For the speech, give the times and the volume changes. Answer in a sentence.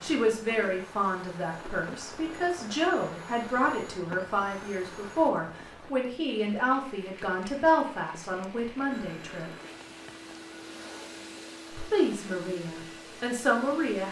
The speech can be heard from 0.0 to 9.5 s, at a steady volume; and briefly from 11.7 to 14.0 s.